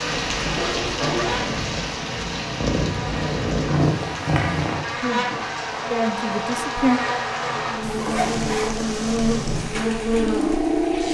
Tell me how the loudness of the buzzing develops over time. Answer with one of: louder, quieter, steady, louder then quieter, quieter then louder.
louder.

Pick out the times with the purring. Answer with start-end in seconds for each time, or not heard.
0.0-4.8, 9.1-11.0.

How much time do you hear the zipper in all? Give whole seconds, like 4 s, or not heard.
2 s.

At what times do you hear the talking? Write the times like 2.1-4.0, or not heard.
5.0-7.0.